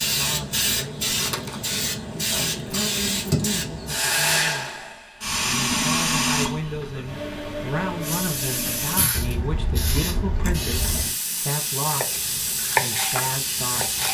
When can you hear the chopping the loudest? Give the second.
13 s.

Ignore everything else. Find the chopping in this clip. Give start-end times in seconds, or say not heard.
11.8-14.0.